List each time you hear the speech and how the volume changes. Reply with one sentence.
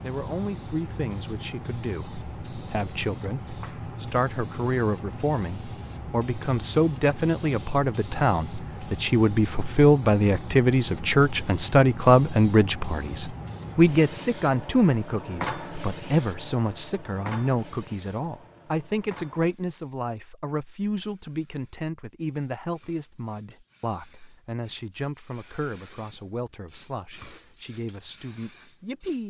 The speech can be heard from 0.0 to 29.2 s, getting louder then quieter.